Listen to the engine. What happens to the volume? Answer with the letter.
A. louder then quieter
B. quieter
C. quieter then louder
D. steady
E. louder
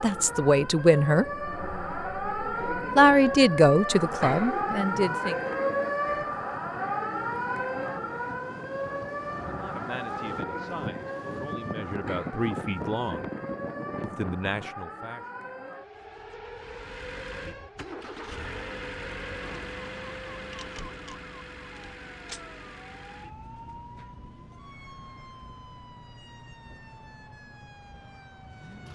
B.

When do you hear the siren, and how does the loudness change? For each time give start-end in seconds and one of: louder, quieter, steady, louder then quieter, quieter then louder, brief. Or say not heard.
0.0-28.8 quieter.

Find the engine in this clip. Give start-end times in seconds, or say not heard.
16.6-28.8.